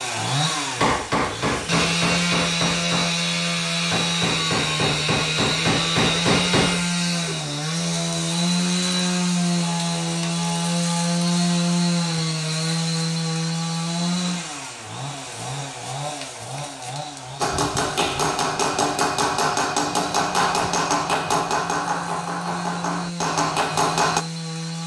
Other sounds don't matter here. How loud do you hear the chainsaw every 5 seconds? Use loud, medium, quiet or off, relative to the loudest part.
loud, loud, loud, medium, medium.